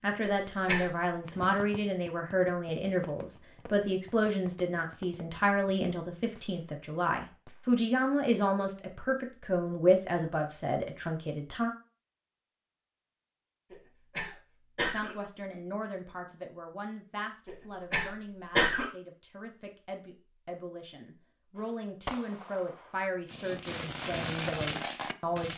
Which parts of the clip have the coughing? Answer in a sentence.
The coughing can be heard from 0.2 to 0.9 s, from 13.7 to 15.2 s and from 17.4 to 18.9 s.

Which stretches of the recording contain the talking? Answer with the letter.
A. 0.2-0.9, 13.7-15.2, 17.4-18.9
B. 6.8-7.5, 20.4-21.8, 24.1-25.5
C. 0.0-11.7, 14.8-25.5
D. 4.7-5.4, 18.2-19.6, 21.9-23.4
C.